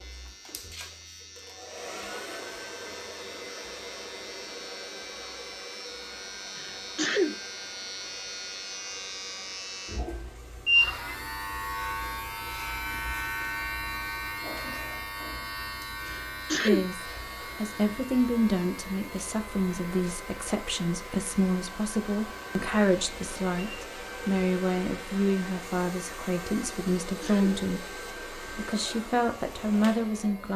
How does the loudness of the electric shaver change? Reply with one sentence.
The volume of the electric shaver goes up, then down.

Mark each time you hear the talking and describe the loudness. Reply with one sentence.
You can hear the talking from 16.6 to 30.5 s, at a steady volume.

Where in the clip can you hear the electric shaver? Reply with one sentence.
You can hear the electric shaver from 0.0 to 30.5 s.